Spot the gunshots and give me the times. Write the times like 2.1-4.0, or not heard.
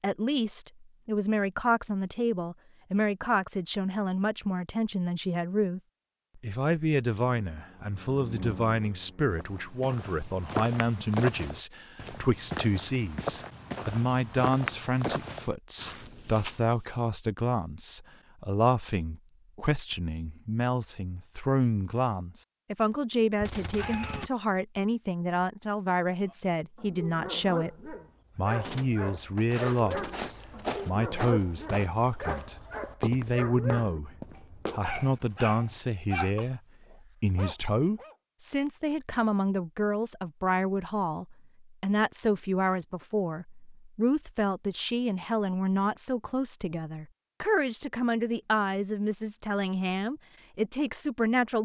23.4-24.3, 28.6-30.4.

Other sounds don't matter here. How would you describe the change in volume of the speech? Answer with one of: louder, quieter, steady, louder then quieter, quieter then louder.
steady.